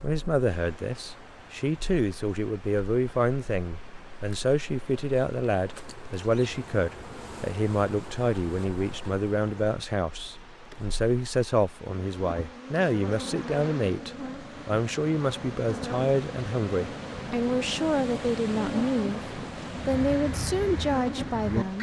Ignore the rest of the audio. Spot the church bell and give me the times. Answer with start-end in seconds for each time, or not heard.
not heard.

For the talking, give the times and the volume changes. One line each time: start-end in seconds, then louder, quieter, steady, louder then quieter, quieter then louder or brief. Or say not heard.
0.0-21.7 steady.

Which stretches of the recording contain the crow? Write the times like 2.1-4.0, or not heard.
19.8-21.7.